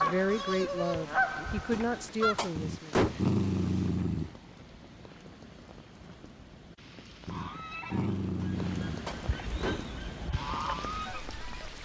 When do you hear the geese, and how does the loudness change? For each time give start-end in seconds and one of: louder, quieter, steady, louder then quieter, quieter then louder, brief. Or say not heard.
0.0-2.5 brief
7.3-11.7 quieter then louder.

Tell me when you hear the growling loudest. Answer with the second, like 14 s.
3 s.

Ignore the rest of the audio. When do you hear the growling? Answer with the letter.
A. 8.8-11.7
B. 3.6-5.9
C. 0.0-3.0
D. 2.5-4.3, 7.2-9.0
D.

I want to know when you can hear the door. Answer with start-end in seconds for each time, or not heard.
1.7-3.3, 8.4-9.9.